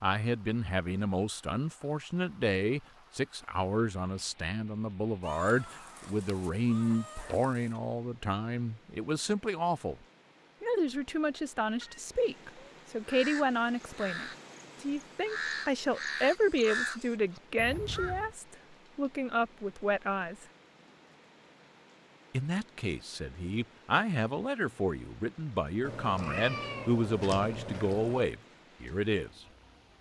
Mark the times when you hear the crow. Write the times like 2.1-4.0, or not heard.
13.1-18.4.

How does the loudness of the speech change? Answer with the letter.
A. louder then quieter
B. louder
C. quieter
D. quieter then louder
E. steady
E.